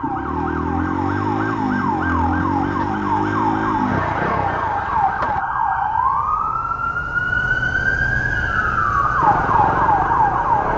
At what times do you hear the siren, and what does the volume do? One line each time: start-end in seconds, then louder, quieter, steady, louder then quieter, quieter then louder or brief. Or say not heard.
0.0-10.7 louder.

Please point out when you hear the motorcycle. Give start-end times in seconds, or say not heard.
0.0-5.4, 9.2-10.7.